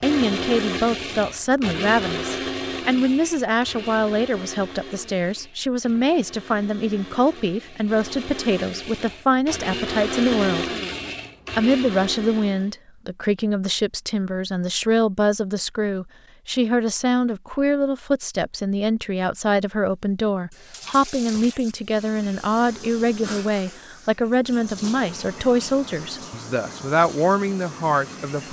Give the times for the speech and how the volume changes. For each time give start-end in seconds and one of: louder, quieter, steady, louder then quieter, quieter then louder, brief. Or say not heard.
0.0-10.7 steady
11.6-28.4 steady.